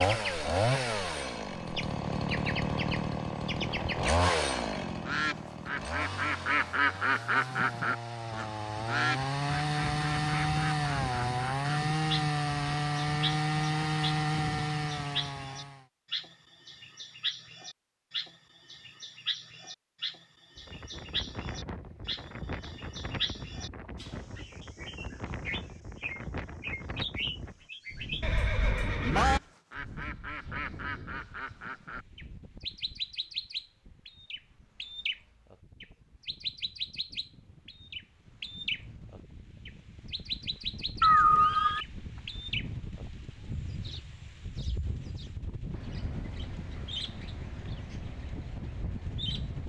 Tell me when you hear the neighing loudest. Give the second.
41 s.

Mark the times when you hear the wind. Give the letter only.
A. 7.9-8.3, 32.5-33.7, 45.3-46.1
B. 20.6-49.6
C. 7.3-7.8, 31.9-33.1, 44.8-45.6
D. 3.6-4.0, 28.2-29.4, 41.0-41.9
B.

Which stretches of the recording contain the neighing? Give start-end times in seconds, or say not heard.
3.6-4.0, 28.2-29.4, 41.0-41.9.